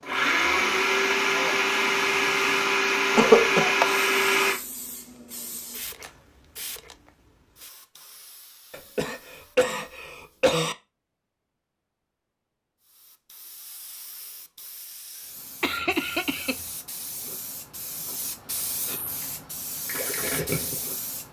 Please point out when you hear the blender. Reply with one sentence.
The blender can be heard from 0.0 to 4.6 s.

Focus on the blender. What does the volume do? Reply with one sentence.
The loudness of the blender stays about the same.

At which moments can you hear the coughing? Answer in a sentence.
The coughing can be heard from 3.1 to 3.7 s, from 8.7 to 10.8 s and from 15.6 to 16.6 s.